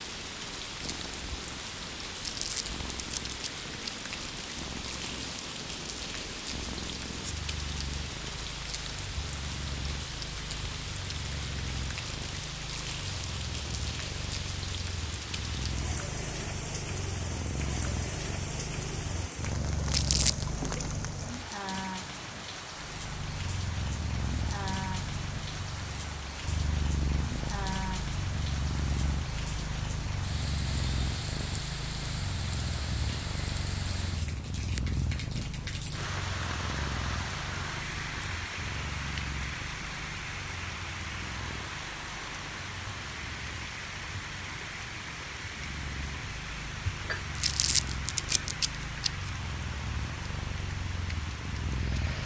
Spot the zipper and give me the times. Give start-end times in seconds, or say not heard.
not heard.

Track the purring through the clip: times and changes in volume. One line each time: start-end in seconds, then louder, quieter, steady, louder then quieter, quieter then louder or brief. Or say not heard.
0.0-21.4 louder
22.7-52.2 quieter then louder.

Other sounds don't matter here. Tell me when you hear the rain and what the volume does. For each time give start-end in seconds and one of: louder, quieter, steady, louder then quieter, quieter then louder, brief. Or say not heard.
0.0-52.2 steady.